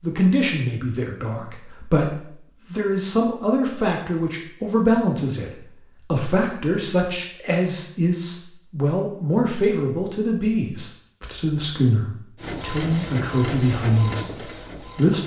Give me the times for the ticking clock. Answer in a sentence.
You can't hear the ticking clock here.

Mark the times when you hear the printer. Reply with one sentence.
You can hear the printer from 12.3 to 15.2 s.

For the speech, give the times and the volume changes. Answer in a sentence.
The speech can be heard from 0.0 to 15.2 s, at a steady volume.